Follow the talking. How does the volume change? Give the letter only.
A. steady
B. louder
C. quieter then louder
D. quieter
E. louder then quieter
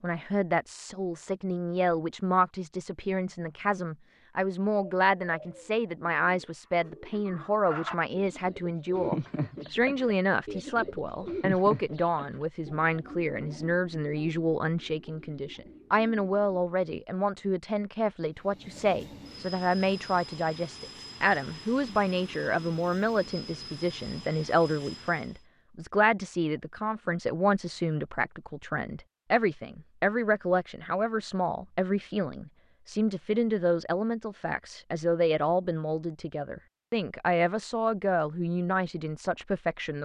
A.